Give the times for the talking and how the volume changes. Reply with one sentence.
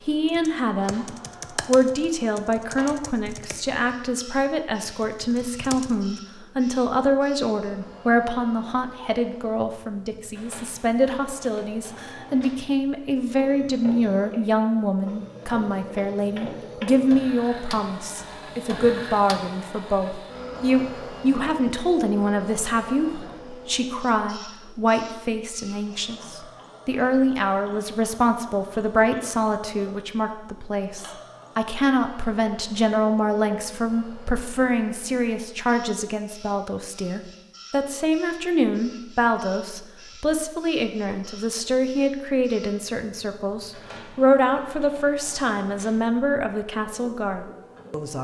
You can hear the talking briefly from 0.1 to 1.1 s; and from 1.6 to 48.1 s, at a steady volume.